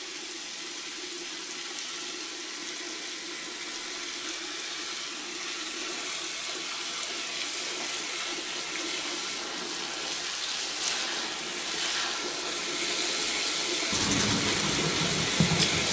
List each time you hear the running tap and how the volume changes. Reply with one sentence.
The running tap can be heard from 0.0 to 15.8 s, getting louder.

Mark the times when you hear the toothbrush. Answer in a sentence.
The toothbrush can be heard from 13.9 to 15.8 s.